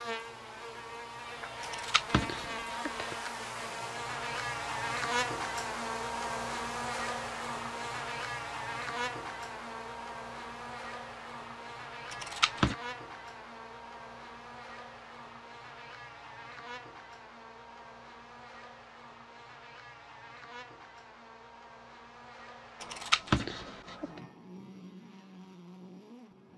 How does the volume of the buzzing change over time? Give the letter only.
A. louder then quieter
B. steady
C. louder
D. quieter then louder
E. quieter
E.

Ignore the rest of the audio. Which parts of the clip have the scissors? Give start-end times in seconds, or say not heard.
1.6-3.1, 12.1-12.8, 22.8-24.1.